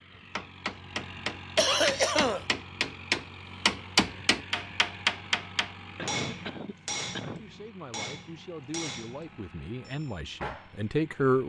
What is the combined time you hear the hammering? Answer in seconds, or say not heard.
11 s.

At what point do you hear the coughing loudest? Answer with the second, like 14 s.
2 s.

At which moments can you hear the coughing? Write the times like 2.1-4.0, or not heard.
1.6-2.5, 6.0-7.5.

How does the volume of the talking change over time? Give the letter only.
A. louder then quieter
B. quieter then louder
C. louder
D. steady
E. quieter
C.